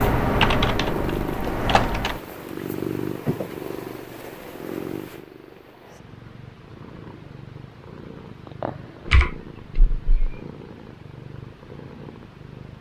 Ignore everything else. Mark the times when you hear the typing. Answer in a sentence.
The typing can be heard from 0.0 to 2.2 s and from 9.1 to 10.3 s.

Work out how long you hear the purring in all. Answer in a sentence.
The purring can be heard for 13 seconds in total.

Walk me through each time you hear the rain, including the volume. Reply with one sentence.
You can't hear the rain here.